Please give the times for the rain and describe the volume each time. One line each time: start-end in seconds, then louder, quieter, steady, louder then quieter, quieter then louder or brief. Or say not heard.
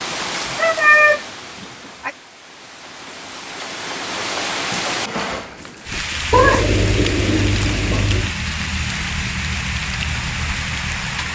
0.0-11.3 louder.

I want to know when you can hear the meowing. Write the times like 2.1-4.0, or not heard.
0.6-2.1, 6.3-8.3.